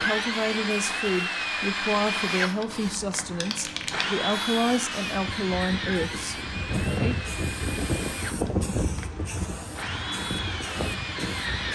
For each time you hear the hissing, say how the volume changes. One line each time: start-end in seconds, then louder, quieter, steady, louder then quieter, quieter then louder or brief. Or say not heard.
0.0-11.7 louder then quieter.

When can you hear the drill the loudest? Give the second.
2 s.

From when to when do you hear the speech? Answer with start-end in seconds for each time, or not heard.
0.0-7.2.